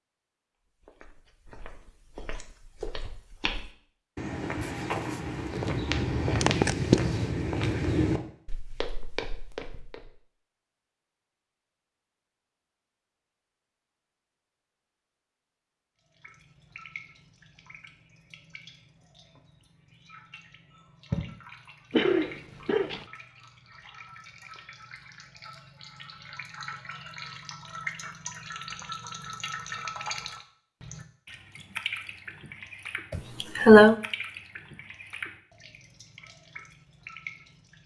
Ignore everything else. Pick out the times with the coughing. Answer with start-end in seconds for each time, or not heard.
6.4-7.0, 21.9-23.1, 33.1-34.0.